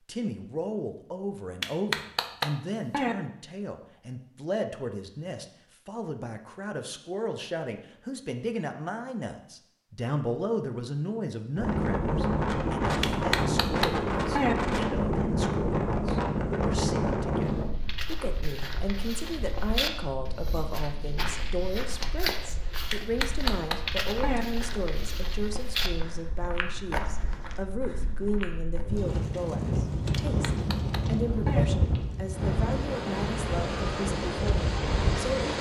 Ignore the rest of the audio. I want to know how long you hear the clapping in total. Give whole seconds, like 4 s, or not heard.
6 s.